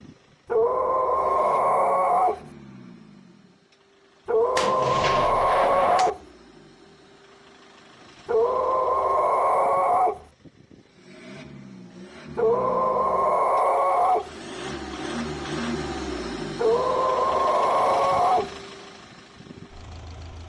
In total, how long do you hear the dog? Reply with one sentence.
You can hear the dog for 10 seconds altogether.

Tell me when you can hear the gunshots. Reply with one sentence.
You can hear the gunshots from 4.5 to 6.2 s.